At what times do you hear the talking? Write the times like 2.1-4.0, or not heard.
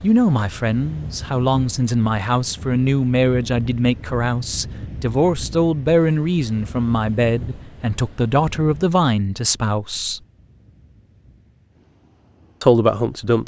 0.0-10.2, 12.6-13.4.